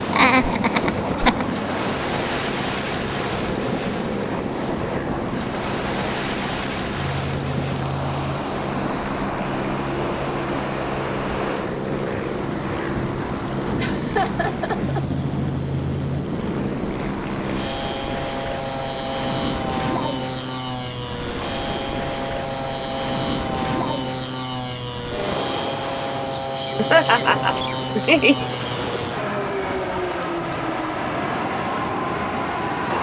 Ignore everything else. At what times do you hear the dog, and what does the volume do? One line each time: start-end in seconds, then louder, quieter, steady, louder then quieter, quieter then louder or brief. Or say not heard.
not heard.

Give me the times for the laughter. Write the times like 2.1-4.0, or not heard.
0.1-1.4, 13.8-15.2, 26.8-28.5.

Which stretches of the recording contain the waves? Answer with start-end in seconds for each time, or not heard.
0.0-32.9.